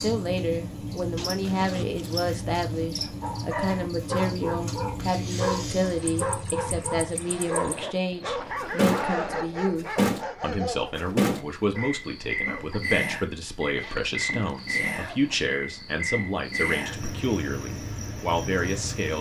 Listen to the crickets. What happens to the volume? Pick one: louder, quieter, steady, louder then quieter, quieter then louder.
louder then quieter.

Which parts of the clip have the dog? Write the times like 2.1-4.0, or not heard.
3.2-12.8.